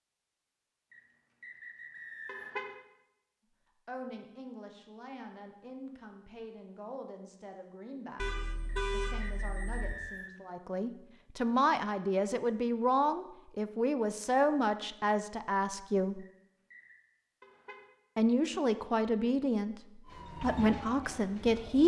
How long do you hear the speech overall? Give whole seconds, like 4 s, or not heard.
16 s.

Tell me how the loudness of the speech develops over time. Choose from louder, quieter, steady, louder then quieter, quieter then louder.
louder.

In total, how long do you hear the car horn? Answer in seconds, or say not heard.
3 s.